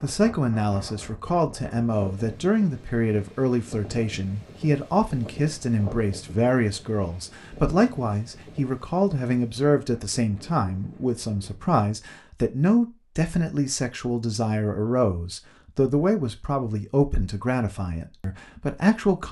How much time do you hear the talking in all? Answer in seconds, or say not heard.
19 s.